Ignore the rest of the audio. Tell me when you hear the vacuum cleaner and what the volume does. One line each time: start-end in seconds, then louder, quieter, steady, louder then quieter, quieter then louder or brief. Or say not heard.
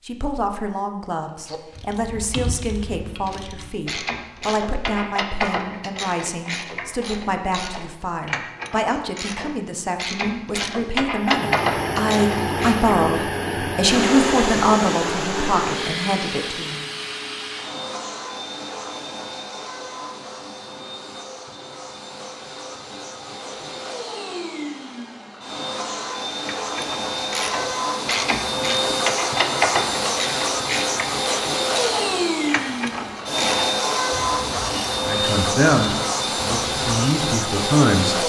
11.2-38.2 quieter then louder.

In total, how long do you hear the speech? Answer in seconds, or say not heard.
20 s.